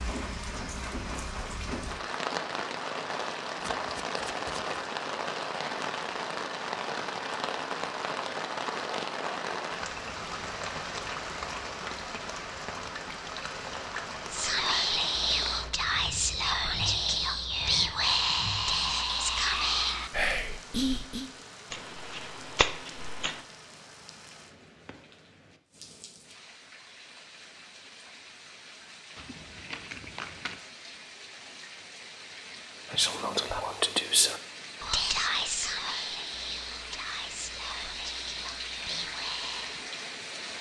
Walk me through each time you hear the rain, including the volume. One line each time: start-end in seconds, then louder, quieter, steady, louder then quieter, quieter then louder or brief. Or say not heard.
0.0-40.5 quieter then louder.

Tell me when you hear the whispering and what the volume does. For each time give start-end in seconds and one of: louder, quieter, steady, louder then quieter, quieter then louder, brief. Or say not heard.
14.3-21.3 steady
32.9-39.9 quieter.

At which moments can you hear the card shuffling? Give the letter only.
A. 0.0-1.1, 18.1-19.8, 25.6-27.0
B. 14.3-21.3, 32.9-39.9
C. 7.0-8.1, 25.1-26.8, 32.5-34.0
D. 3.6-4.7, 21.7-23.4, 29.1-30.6
D.